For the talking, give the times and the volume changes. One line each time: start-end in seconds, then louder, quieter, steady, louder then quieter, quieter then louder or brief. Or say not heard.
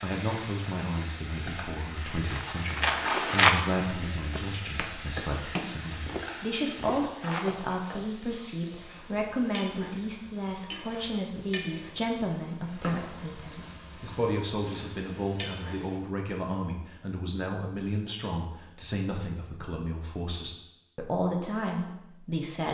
0.0-22.6 steady.